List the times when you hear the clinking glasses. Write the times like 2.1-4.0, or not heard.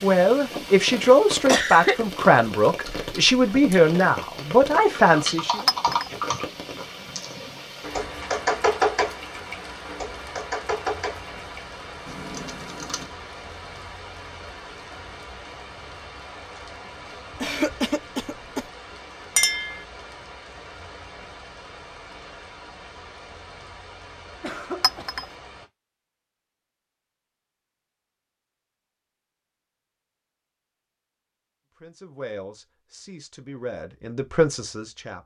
5.7-6.1, 19.4-19.9, 24.8-25.2.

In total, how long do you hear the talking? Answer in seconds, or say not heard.
9 s.